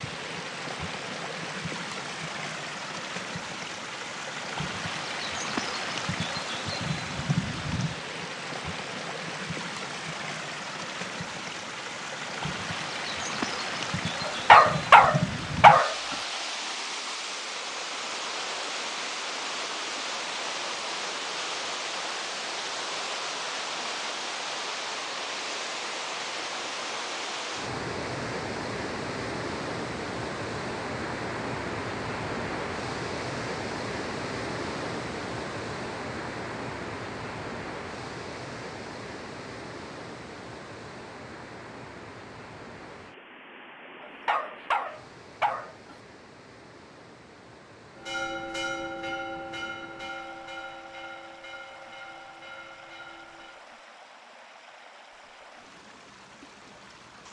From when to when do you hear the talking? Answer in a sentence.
The talking can't be heard in this clip.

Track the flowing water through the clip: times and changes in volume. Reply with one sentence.
You can hear the flowing water from 0.0 to 57.2 s, getting quieter.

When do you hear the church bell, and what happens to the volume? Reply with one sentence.
You can hear the church bell from 48.0 to 53.6 s, getting quieter.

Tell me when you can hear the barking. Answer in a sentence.
You can hear the barking from 14.2 to 16.1 s and from 44.0 to 46.0 s.